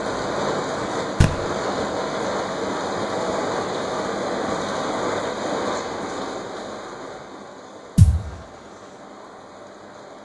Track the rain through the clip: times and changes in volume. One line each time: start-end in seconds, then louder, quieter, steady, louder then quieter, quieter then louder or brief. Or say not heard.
0.0-10.1 quieter.